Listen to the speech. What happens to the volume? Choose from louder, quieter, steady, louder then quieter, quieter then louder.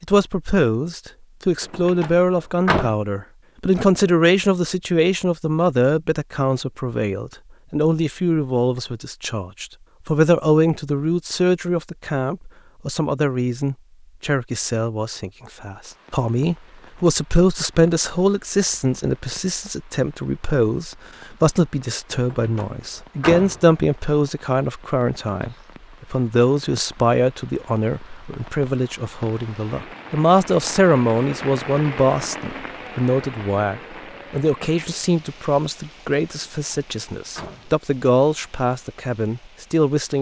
steady.